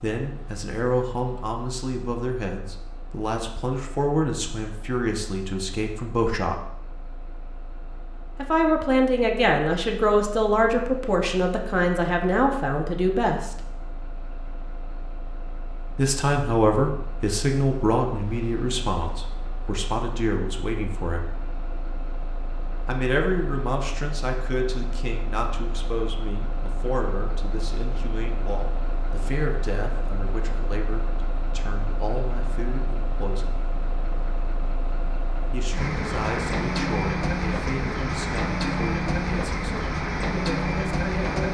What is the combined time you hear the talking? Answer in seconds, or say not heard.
34 s.